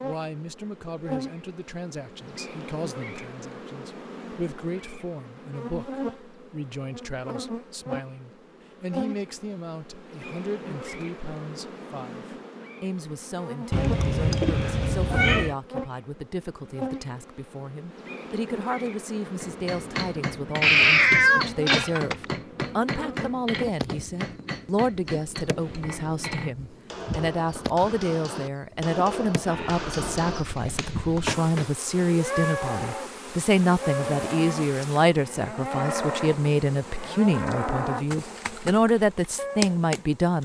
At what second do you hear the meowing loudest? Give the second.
21 s.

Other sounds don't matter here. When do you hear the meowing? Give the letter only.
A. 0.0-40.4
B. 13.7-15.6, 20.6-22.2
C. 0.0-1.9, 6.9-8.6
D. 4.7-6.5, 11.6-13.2
B.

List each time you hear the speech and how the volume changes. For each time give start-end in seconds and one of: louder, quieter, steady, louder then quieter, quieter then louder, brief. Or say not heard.
0.0-40.4 louder.